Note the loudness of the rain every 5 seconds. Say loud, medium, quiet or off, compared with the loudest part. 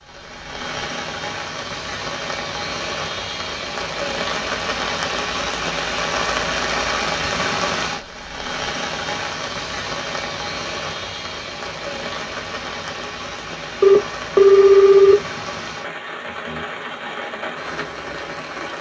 loud, loud, medium, medium.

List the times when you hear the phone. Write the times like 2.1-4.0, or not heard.
13.8-15.2.